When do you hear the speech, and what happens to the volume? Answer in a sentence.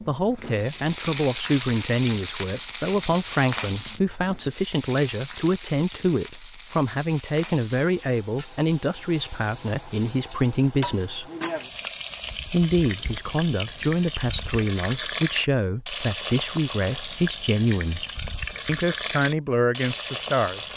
You can hear the speech from 0.0 to 11.2 s, at a steady volume; from 12.4 to 18.1 s, at a steady volume; and briefly from 18.6 to 20.7 s.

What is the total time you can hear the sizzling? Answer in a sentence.
The sizzling can be heard for 21 seconds in total.